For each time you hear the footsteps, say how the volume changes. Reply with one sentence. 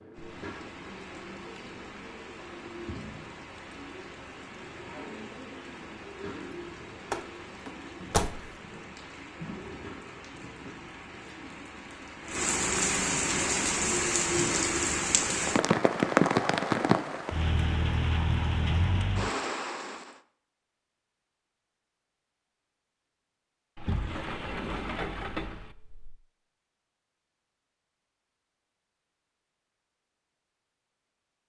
You can't hear the footsteps here.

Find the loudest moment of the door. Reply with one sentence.
The loudest moment of the door is at 8 seconds.